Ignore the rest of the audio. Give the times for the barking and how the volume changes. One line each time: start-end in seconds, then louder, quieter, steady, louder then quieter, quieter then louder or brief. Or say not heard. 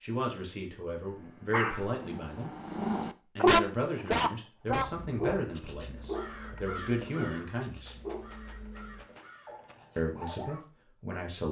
1.1-10.7 louder then quieter.